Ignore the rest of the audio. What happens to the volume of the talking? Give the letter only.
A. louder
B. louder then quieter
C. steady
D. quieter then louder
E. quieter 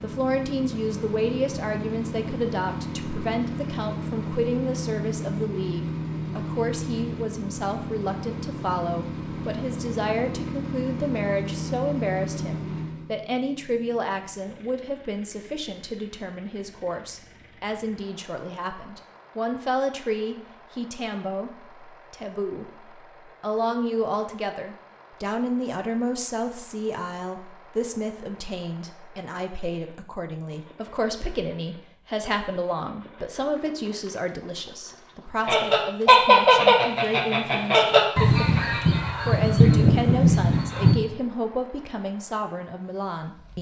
C.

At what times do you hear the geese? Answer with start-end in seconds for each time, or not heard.
35.5-41.0.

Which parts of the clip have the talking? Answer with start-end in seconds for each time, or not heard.
0.0-43.5.